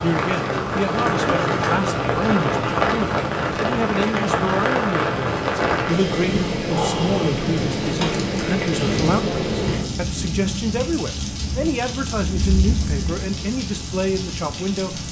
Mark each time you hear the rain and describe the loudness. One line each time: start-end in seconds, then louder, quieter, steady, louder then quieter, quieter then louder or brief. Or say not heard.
0.0-15.0 quieter.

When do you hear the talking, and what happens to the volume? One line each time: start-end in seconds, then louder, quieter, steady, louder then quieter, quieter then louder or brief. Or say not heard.
0.0-15.0 steady.